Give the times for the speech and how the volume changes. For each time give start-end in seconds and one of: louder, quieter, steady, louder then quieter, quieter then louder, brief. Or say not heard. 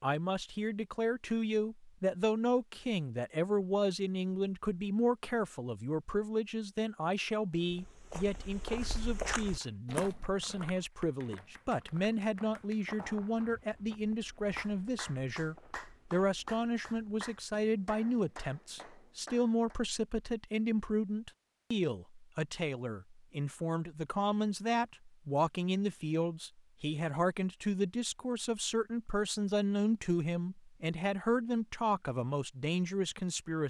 0.0-33.6 steady.